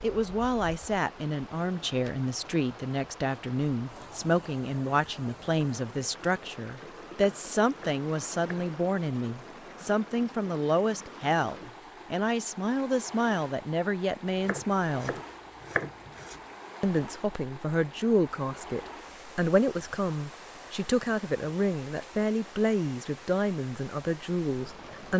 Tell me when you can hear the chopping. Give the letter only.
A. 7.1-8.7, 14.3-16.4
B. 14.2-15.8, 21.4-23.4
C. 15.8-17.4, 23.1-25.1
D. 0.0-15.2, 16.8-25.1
A.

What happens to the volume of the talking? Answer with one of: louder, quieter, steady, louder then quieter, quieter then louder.
steady.